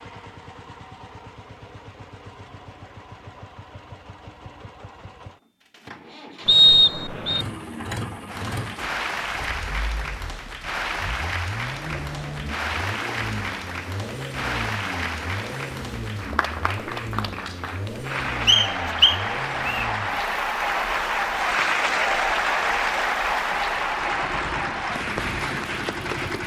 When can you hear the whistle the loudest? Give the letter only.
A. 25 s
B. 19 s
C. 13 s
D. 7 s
D.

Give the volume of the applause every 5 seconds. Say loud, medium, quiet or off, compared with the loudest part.
off, medium, medium, medium, loud, medium.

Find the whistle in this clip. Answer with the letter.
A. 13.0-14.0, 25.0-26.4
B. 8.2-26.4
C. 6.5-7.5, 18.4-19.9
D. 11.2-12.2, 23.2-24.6
C.